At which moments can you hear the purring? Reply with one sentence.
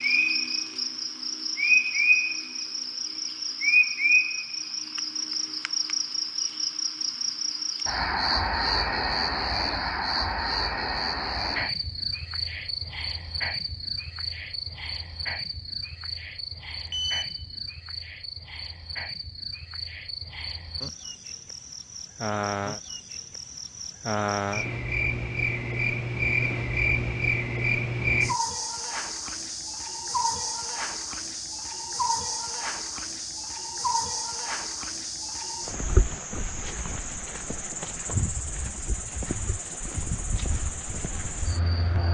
The purring can't be heard in this clip.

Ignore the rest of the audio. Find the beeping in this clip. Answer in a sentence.
The beeping can be heard from 16.9 to 17.4 s.